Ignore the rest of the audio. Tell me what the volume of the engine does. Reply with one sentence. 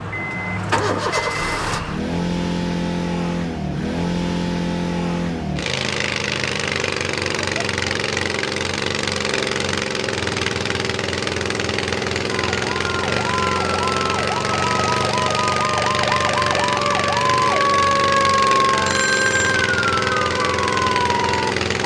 The volume of the engine stays about the same.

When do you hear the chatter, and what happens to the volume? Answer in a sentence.
The chatter can't be heard in this clip.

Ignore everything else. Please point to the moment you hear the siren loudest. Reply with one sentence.
The volume of the siren peaks at 18 seconds.